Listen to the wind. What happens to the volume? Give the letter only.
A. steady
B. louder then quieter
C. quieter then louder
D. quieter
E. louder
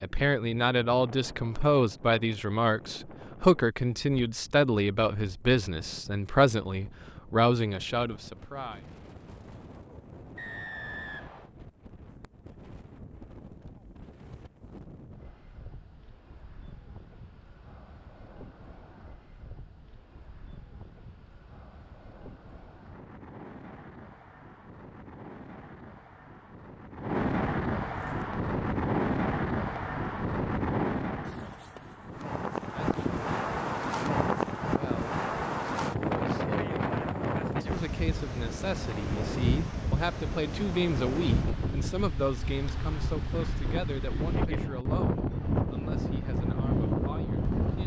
E.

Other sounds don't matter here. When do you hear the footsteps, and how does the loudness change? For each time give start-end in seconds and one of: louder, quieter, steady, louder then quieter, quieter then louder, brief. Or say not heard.
not heard.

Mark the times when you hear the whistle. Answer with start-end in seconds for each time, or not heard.
10.3-11.5.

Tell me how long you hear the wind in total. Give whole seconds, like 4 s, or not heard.
48 s.